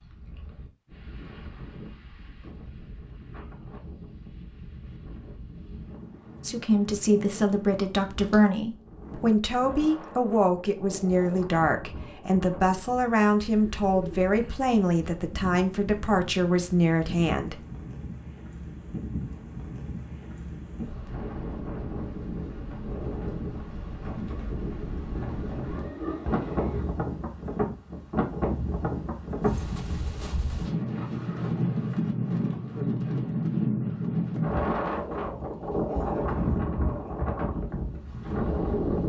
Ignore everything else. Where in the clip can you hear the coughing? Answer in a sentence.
The coughing can't be heard in this clip.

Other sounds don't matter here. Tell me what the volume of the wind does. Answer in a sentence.
The loudness of the wind goes up.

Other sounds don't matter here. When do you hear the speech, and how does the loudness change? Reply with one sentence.
You can hear the speech from 6.4 to 17.6 s, at a steady volume.